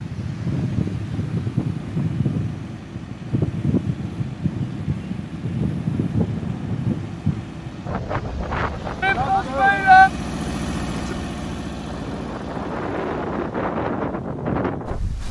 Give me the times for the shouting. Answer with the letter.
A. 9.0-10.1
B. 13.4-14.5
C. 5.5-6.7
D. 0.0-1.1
A.